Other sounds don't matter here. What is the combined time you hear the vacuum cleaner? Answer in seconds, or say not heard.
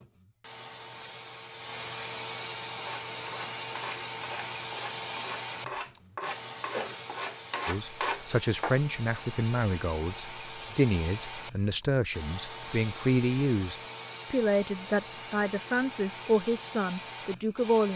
18 s.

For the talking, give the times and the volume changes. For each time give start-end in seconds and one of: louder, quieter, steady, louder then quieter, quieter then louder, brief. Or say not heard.
7.7-17.9 steady.